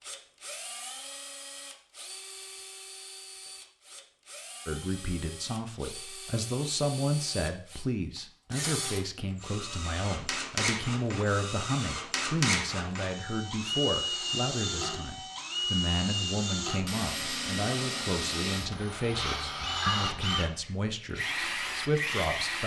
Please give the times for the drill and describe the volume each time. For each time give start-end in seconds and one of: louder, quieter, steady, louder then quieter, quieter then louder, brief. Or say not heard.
0.0-22.6 louder.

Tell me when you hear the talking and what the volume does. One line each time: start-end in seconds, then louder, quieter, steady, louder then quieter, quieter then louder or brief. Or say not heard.
4.7-22.6 steady.